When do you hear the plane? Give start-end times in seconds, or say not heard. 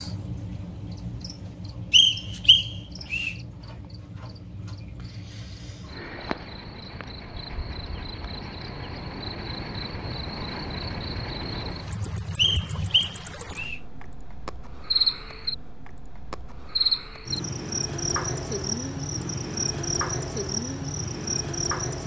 not heard.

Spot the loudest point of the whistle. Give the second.
2 s.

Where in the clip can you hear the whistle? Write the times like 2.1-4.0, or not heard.
1.9-3.4, 12.3-13.8.